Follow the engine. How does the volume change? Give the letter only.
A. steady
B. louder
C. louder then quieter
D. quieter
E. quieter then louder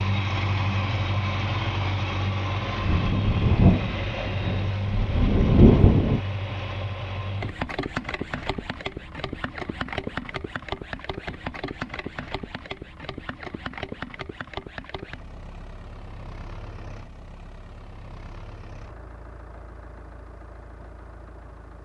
D.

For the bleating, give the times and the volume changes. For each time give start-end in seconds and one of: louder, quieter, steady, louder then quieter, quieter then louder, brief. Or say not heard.
not heard.